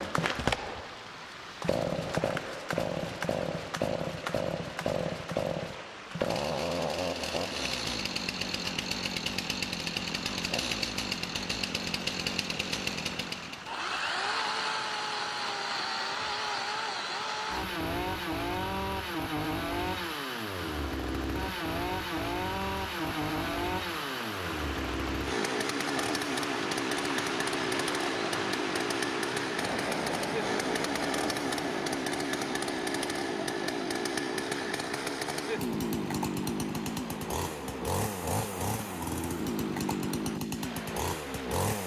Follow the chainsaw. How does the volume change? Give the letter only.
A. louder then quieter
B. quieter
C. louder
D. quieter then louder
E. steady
E.